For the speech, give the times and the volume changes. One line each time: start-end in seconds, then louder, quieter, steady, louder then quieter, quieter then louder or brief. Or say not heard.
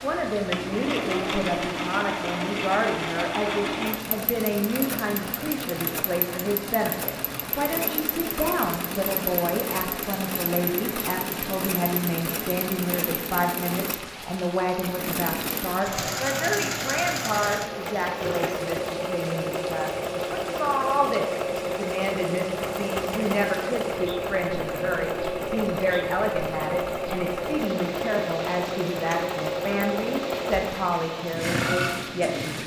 0.0-32.6 steady.